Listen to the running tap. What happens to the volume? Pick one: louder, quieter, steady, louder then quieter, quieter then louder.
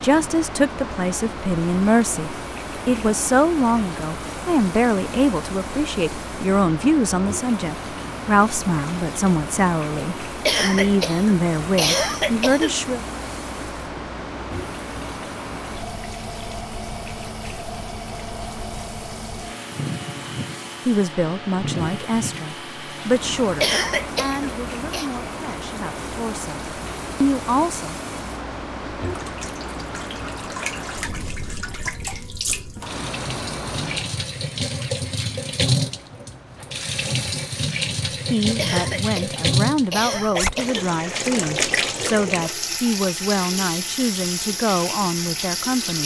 louder.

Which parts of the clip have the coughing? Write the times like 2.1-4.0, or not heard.
10.4-12.8, 23.6-25.1, 38.5-40.8.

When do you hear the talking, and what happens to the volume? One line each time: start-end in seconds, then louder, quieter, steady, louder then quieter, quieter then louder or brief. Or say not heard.
0.0-13.0 steady
20.1-27.9 quieter then louder
38.3-46.0 steady.